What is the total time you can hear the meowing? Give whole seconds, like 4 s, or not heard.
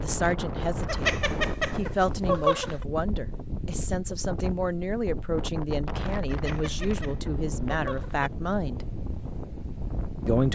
4 s.